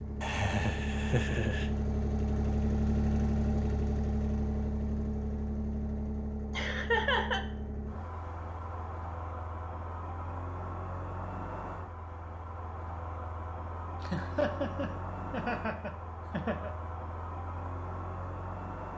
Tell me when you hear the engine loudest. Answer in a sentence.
The volume of the engine peaks at 3 seconds.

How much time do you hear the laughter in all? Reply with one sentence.
You can hear the laughter for 5 seconds altogether.